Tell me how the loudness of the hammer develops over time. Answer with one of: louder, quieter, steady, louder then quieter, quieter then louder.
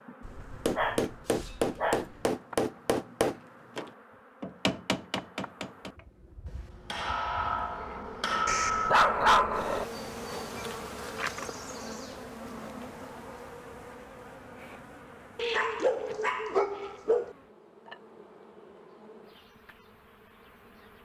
quieter then louder.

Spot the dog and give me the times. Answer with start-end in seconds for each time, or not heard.
0.2-2.0, 8.4-9.8, 15.3-17.4.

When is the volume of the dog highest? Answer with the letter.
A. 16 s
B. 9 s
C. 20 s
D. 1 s
B.